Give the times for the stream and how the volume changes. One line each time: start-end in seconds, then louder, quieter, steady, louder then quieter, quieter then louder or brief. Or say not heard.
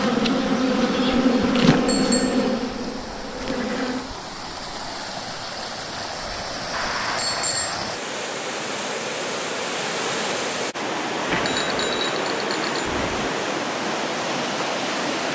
0.0-15.2 louder.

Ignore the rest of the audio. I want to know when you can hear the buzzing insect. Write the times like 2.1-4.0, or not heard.
0.0-4.1.